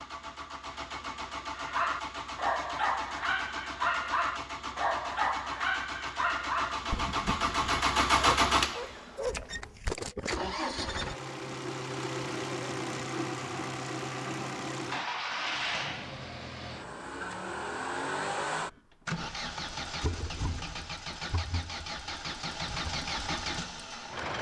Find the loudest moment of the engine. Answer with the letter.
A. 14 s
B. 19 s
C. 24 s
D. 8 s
D.